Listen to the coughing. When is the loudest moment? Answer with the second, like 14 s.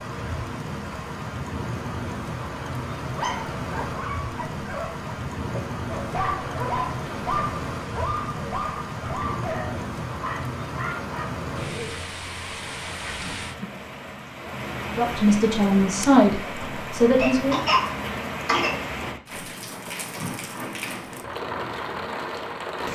18 s.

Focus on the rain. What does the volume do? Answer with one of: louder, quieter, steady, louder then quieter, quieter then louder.
steady.